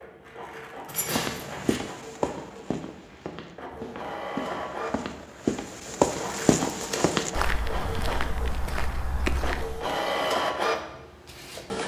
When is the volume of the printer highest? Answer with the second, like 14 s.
10 s.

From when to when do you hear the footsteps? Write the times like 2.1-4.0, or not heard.
1.1-9.8.